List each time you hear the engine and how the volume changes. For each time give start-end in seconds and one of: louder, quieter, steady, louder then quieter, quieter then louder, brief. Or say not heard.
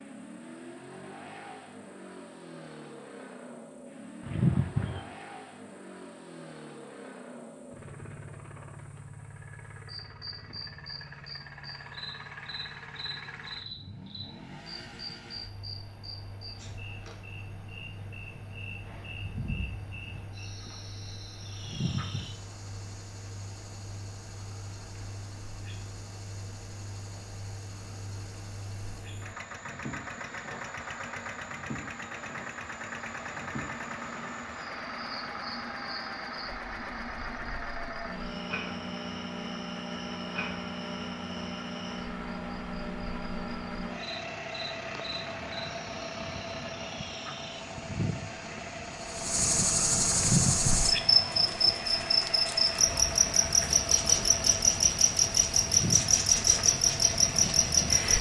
0.0-58.1 louder.